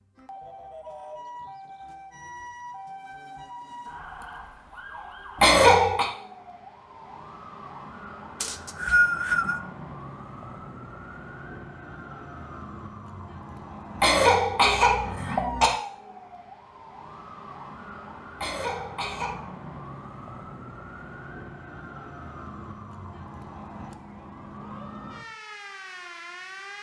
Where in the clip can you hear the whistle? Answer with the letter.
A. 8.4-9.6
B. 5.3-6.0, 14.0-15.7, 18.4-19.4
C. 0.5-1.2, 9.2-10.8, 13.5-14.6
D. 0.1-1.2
A.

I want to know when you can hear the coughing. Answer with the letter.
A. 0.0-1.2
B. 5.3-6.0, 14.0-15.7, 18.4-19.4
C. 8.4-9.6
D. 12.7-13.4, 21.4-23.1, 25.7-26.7
B.